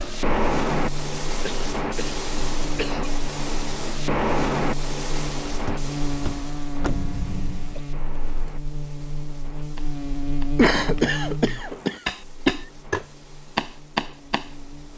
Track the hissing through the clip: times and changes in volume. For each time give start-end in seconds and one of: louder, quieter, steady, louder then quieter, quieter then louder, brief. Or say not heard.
0.0-14.9 quieter.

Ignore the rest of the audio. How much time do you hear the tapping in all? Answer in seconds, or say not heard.
5 s.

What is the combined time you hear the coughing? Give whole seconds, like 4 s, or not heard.
5 s.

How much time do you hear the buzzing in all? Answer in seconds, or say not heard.
15 s.